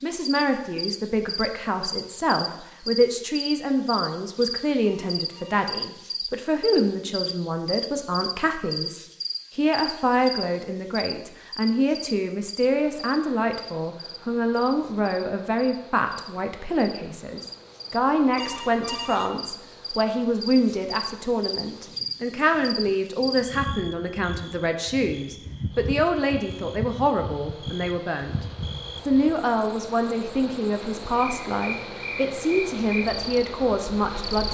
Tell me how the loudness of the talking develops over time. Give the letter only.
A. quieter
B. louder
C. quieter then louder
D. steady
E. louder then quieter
D.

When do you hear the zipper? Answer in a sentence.
The zipper can't be heard in this clip.